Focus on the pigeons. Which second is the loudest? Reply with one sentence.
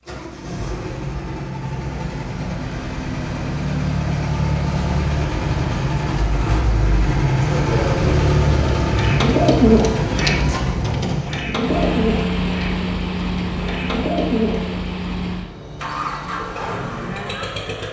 The volume of the pigeons peaks at 10 seconds.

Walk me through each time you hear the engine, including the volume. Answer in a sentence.
You can hear the engine from 0.1 to 17.8 s, getting louder then quieter.